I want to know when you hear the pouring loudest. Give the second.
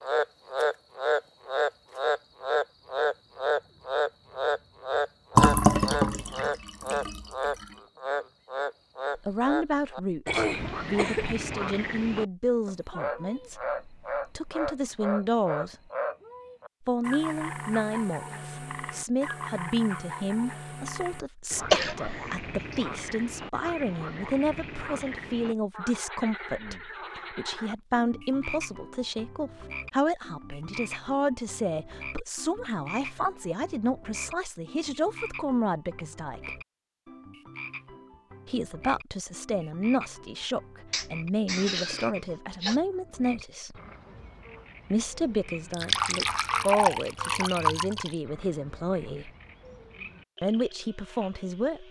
6 s.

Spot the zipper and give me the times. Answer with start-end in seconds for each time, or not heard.
not heard.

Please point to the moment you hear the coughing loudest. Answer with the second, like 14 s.
22 s.